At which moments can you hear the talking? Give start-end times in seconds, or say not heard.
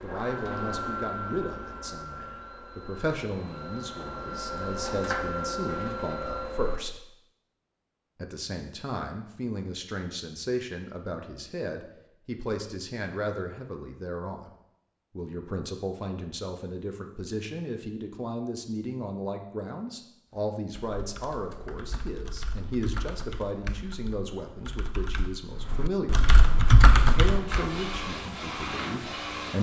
0.0-7.0, 8.2-14.5, 15.2-26.2, 27.1-29.5.